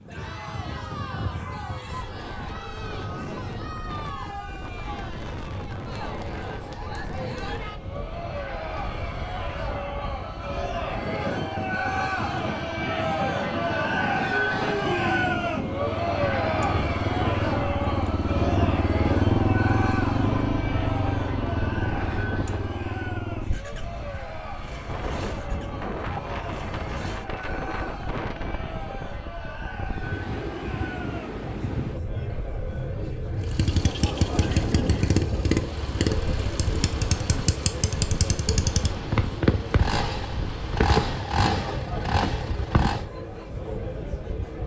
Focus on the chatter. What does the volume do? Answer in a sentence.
The loudness of the chatter goes up, then down.